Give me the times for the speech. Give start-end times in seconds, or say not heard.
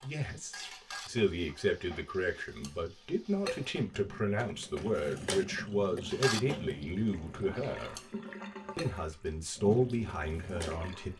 0.0-8.0, 8.8-11.1.